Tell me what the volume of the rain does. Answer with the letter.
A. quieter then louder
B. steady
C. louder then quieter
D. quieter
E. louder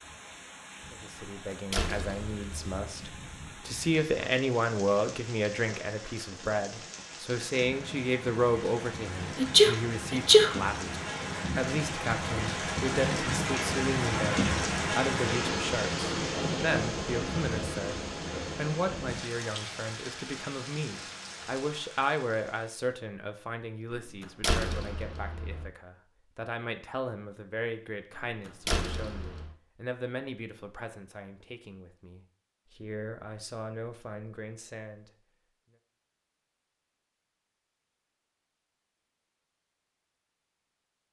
C.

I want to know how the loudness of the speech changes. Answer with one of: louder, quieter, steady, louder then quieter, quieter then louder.
quieter.